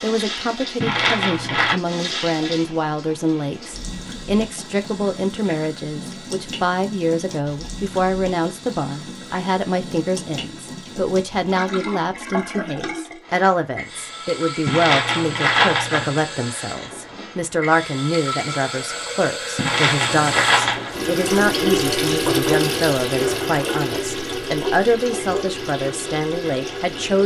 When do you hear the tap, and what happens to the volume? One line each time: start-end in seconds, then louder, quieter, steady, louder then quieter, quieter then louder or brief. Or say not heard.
0.0-27.2 louder.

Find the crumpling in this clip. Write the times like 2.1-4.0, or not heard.
0.8-1.8, 14.7-16.2, 19.6-20.9.